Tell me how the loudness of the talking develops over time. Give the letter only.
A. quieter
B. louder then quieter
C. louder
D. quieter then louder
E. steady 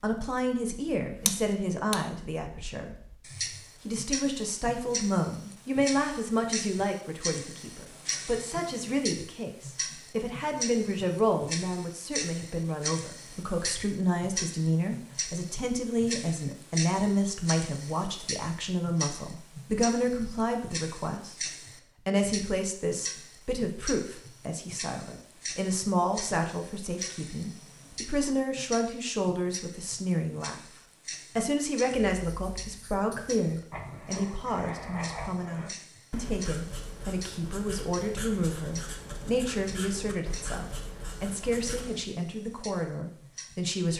E.